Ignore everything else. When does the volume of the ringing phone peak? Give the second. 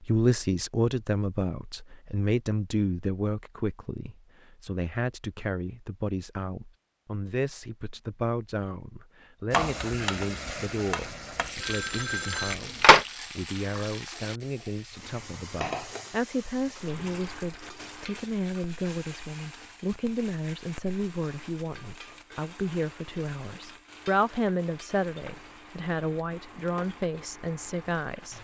13 s.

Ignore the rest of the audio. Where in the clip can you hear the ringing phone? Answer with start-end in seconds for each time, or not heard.
11.6-13.1.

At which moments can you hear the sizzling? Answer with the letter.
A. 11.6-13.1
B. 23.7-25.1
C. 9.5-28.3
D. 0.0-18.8
C.